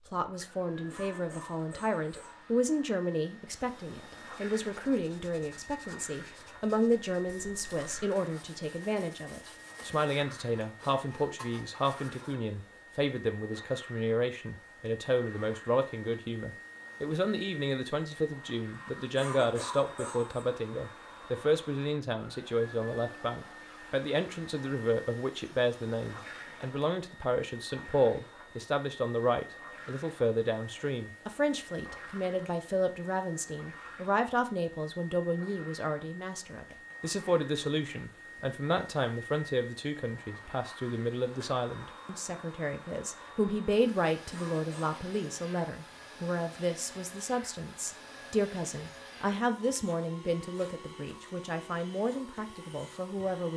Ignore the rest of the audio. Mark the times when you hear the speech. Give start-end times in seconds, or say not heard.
0.1-53.5.